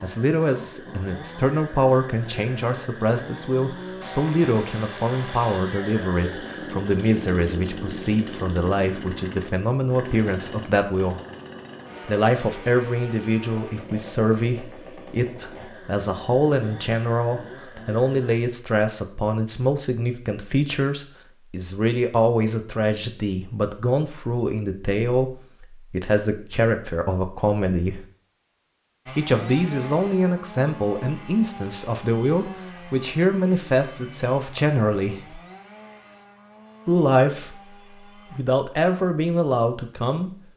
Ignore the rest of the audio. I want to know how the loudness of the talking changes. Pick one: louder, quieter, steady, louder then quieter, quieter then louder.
steady.